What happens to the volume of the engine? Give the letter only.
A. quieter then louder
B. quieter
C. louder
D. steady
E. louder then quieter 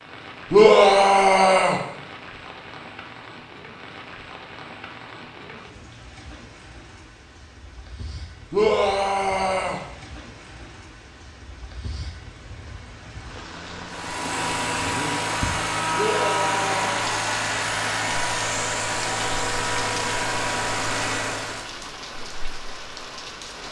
D.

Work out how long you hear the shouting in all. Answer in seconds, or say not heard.
4 s.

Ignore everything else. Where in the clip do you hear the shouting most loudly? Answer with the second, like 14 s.
1 s.